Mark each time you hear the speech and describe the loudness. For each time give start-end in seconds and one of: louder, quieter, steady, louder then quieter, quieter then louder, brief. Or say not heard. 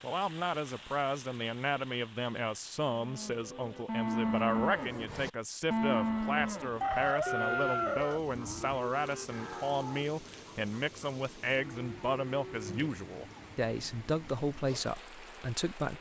0.0-15.9 steady.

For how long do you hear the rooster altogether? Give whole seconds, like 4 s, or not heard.
2 s.